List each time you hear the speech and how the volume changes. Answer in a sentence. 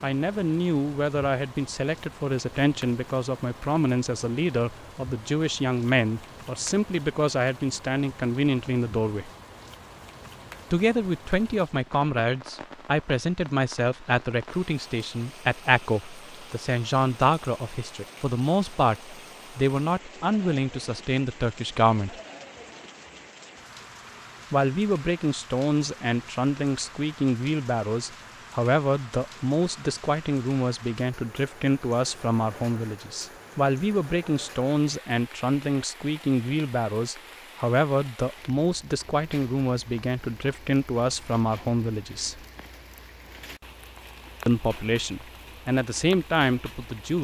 You can hear the speech from 0.0 to 9.3 s, at a steady volume; from 10.7 to 22.1 s, at a steady volume; from 24.5 to 42.5 s, at a steady volume; and briefly from 44.5 to 47.1 s.